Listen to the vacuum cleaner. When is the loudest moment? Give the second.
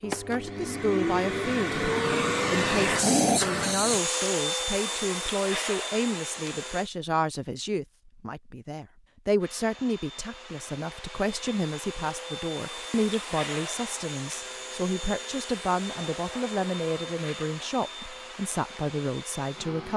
3 s.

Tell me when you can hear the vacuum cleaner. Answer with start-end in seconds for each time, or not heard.
0.0-6.9, 9.4-19.9.